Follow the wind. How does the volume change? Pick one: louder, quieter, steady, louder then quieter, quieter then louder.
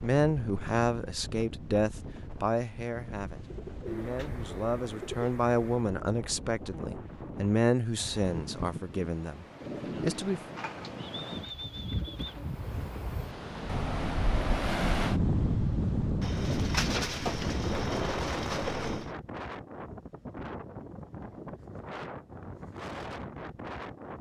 louder then quieter.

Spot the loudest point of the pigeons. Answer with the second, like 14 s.
17 s.